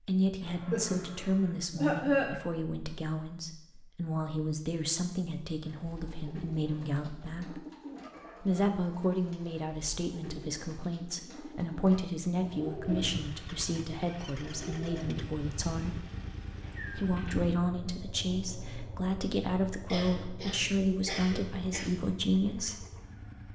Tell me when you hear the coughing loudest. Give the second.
2 s.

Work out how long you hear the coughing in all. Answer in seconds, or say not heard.
4 s.